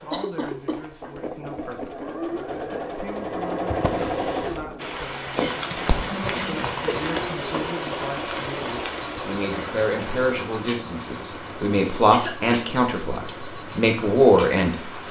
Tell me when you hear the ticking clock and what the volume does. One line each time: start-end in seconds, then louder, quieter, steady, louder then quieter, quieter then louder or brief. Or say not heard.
not heard.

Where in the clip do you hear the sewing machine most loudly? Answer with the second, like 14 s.
4 s.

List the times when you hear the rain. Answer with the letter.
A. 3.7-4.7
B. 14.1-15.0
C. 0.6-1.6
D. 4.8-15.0
D.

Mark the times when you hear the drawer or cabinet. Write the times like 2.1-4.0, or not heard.
3.7-4.7.